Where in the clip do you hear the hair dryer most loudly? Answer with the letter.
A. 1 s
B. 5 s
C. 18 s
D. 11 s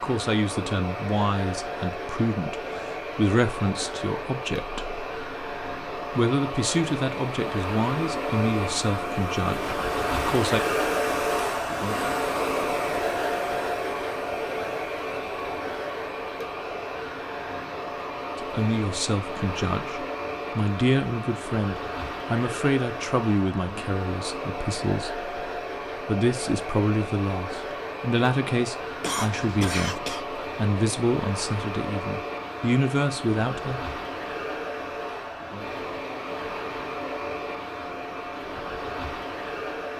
D.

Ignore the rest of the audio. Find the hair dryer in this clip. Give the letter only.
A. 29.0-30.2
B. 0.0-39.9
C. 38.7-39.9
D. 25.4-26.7
B.